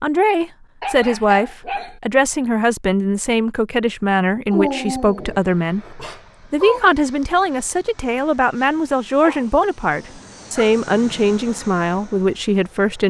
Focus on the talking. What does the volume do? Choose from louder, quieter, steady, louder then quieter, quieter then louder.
steady.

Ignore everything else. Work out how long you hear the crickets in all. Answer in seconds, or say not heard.
not heard.